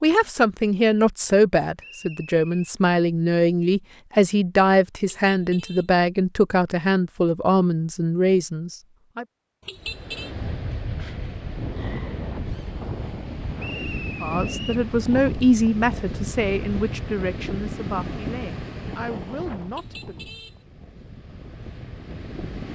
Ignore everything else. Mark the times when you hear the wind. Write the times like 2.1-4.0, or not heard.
9.8-22.7.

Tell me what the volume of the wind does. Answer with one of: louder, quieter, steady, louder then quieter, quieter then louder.
quieter.